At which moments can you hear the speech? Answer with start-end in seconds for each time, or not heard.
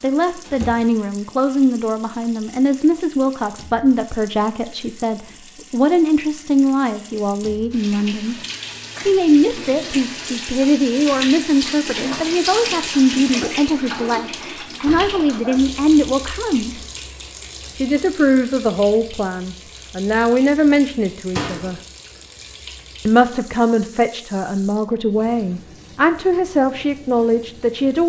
0.0-8.3, 9.1-16.8, 17.8-21.8, 23.1-28.0.